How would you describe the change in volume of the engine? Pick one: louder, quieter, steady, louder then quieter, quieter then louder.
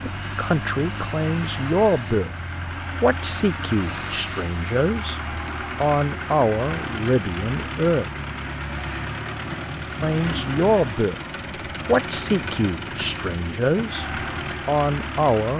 steady.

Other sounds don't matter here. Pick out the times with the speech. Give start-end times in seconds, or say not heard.
0.0-2.3, 3.0-5.2, 5.8-8.1, 10.0-11.2, 11.8-15.5.